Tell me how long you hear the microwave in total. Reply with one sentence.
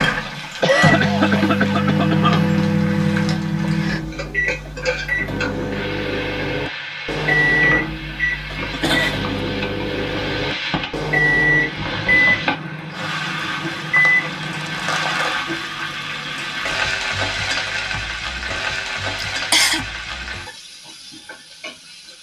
You can hear the microwave for 15 seconds altogether.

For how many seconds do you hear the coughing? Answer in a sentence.
You can hear the coughing for 3 seconds altogether.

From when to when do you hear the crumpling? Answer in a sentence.
The crumpling can be heard from 13.9 to 15.4 s.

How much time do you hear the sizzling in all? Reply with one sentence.
The sizzling can be heard for 22 seconds in total.